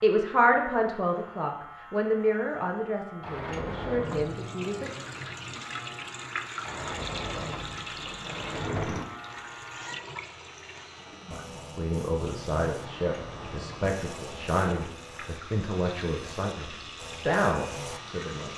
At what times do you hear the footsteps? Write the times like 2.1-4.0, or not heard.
not heard.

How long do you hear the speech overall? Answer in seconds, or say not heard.
12 s.